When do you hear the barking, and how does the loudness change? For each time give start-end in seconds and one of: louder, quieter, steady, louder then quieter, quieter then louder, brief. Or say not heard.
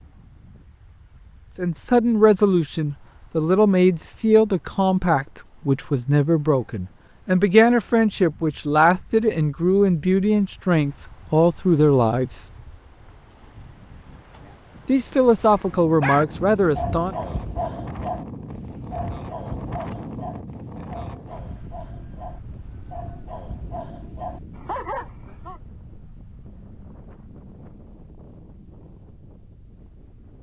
15.5-25.6 quieter then louder.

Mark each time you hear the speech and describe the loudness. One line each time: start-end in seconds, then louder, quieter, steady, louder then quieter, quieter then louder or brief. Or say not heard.
1.6-12.4 steady
14.8-17.1 brief.